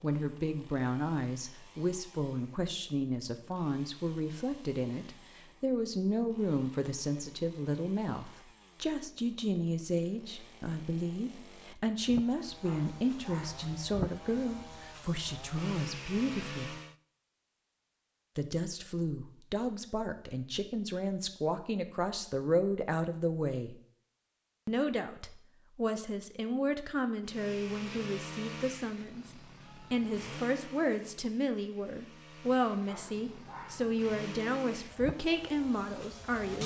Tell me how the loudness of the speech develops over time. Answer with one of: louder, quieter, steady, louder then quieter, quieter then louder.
steady.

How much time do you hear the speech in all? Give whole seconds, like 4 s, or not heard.
34 s.